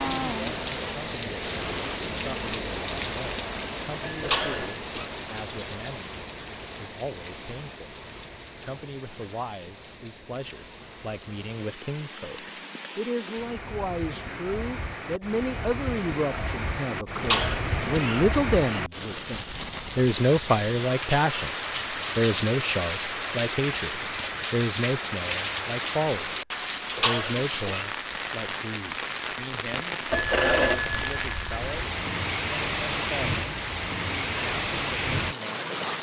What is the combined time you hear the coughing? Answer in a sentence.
The coughing can be heard for 3 seconds in total.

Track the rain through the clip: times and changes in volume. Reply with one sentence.
You can hear the rain from 0.0 to 35.9 s, getting quieter then louder.